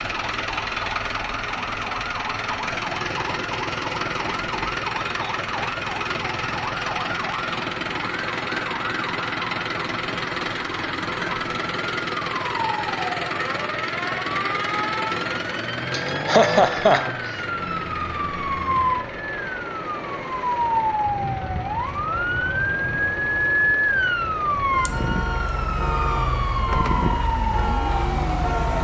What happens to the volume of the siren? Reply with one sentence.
The volume of the siren goes up.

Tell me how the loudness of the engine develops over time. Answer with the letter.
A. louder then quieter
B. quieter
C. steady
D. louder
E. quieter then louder
B.